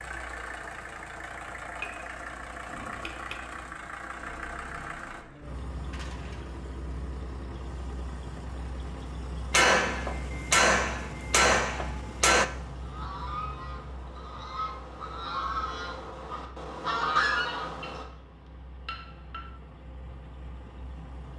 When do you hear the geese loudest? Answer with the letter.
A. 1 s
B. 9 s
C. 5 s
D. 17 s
D.